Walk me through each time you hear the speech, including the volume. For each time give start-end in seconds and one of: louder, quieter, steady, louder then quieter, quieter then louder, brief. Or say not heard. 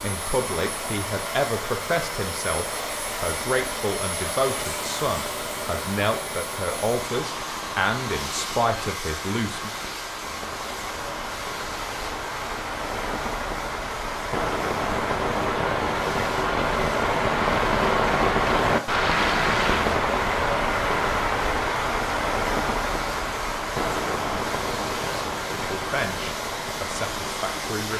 0.0-9.7 steady
25.5-27.9 brief.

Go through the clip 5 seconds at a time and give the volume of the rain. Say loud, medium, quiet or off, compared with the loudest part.
quiet, quiet, medium, loud, loud, medium.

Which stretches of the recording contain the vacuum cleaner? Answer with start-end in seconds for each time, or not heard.
0.0-27.9.